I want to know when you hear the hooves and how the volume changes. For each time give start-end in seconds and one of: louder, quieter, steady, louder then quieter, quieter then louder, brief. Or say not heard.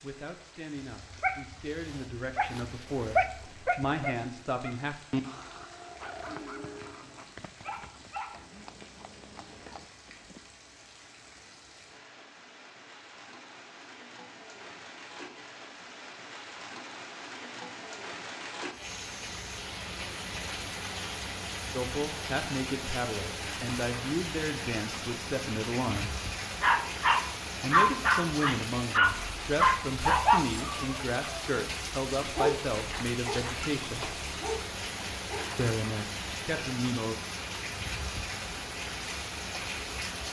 5.5-10.4 steady.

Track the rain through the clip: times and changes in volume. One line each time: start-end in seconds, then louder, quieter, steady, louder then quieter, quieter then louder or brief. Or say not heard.
0.0-40.2 louder.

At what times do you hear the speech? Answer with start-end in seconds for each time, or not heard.
0.0-5.0, 21.7-26.1, 27.6-34.1, 35.5-37.1.